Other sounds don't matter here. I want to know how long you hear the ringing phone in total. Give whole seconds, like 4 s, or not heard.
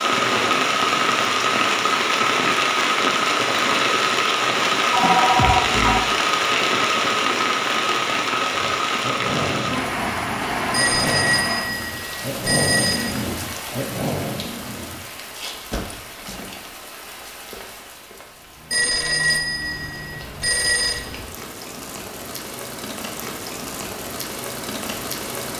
6 s.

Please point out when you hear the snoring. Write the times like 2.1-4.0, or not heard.
8.5-15.0.